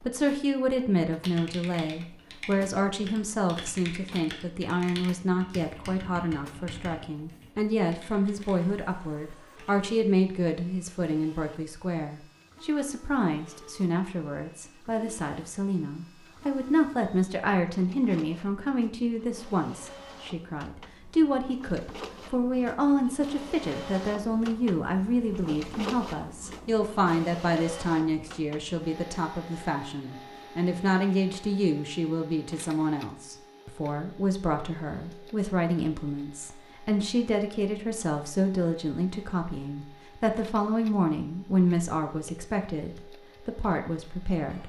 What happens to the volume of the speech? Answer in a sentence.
The volume of the speech stays about the same.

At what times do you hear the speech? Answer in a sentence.
The speech can be heard from 0.0 to 44.6 s.